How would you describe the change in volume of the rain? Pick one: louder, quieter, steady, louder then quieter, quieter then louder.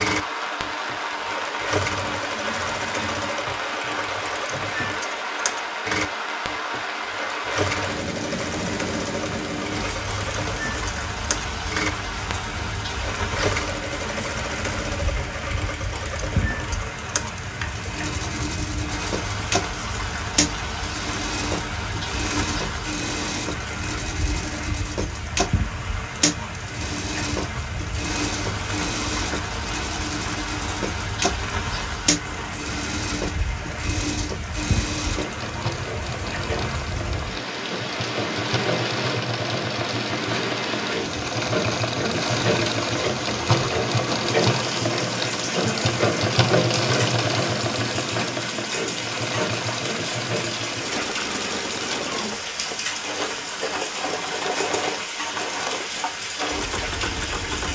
steady.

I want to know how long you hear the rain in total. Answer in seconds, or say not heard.
58 s.